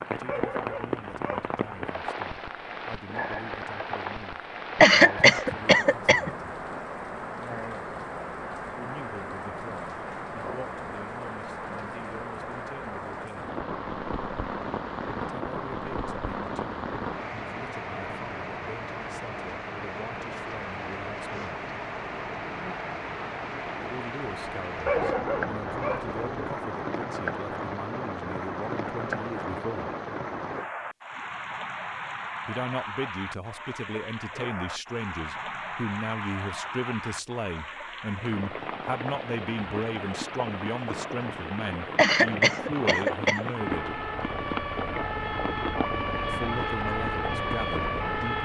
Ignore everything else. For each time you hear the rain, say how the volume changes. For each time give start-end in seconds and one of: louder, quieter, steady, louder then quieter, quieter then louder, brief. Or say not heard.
0.0-48.4 steady.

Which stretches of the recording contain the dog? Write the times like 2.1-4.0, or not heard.
0.2-1.9, 24.9-26.5.